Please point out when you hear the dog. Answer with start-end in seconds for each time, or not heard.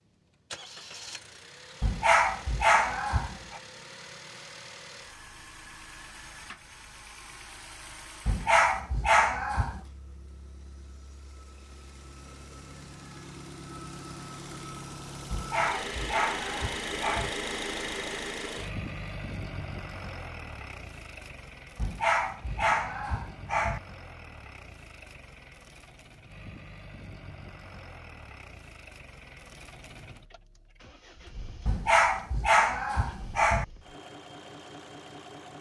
1.8-3.6, 8.2-9.8, 15.3-17.3, 21.8-23.8, 31.6-33.6.